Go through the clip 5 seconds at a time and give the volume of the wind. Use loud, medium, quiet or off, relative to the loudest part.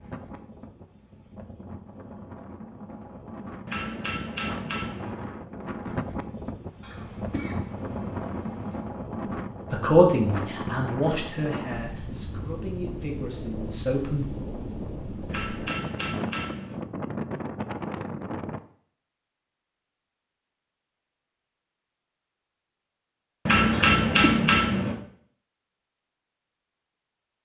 medium, loud, loud, loud, off, off.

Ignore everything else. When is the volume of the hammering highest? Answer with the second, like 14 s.
24 s.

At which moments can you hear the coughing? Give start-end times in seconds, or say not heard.
6.8-8.8, 23.7-24.4.